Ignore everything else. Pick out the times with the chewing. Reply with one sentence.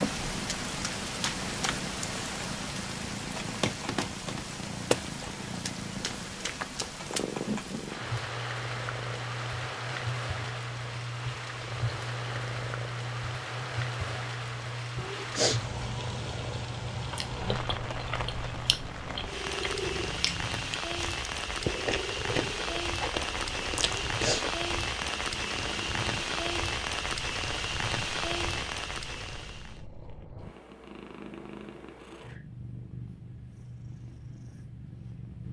The chewing can be heard from 17.1 to 24.5 s.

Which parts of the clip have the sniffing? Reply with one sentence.
The sniffing can be heard from 14.9 to 15.6 s and from 23.8 to 24.4 s.